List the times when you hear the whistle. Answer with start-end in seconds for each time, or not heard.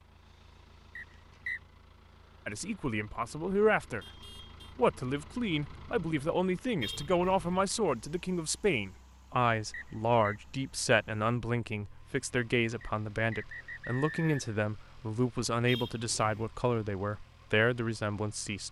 0.9-1.6, 9.7-10.4, 12.8-14.4.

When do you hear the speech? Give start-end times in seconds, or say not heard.
2.5-4.0, 4.8-18.6.